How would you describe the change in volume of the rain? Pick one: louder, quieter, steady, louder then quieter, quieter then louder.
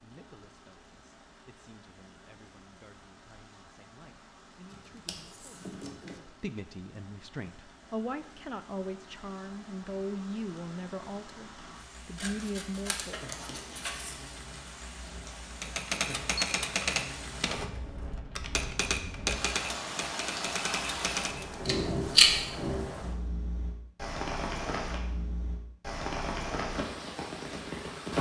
louder.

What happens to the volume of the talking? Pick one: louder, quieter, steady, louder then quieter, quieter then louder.
louder.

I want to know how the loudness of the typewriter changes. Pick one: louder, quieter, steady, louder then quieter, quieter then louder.
quieter.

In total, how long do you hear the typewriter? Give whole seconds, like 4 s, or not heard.
6 s.